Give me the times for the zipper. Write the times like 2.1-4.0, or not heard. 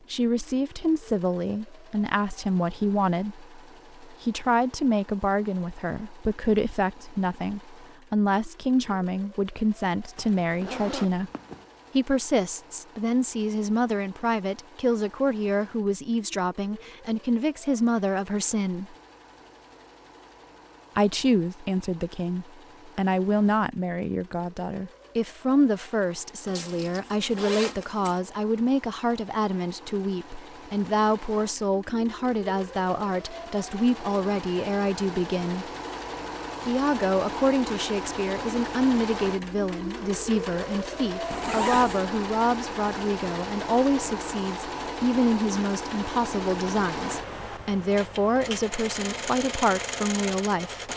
10.2-11.7, 26.4-28.2, 41.3-42.0.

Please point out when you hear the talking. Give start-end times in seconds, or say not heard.
0.1-11.3, 11.9-18.9, 20.9-35.7, 36.6-50.9.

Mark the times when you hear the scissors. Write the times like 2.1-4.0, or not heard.
not heard.